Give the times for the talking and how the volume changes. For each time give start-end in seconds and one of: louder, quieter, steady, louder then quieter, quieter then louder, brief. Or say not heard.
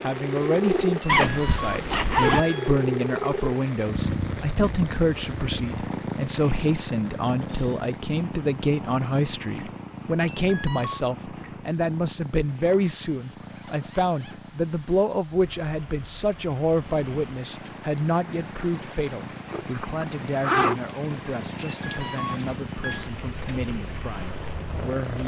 0.0-25.2 quieter.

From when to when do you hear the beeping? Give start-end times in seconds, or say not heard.
1.0-2.8, 10.2-11.1, 21.6-23.1.